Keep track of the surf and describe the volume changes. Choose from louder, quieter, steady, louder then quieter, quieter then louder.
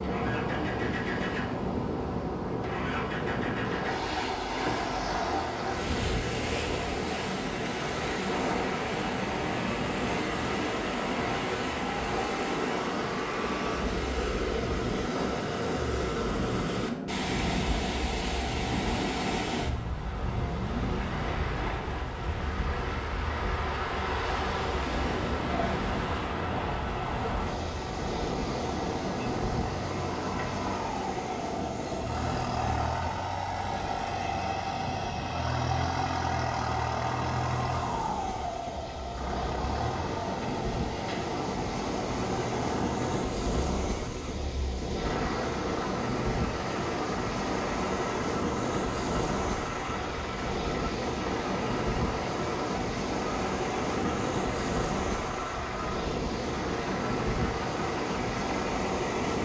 steady.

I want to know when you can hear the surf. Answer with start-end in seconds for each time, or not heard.
0.0-59.4.